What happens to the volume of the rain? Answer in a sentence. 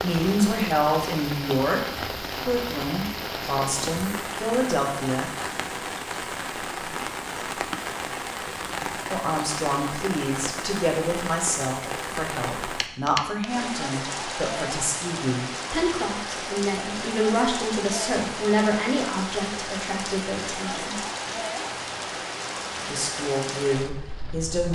The volume of the rain stays about the same.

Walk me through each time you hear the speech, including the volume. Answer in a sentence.
The speech can be heard briefly from 0.0 to 1.8 s; briefly from 2.5 to 5.3 s; from 9.1 to 20.9 s, at a steady volume; and briefly from 22.8 to 24.7 s.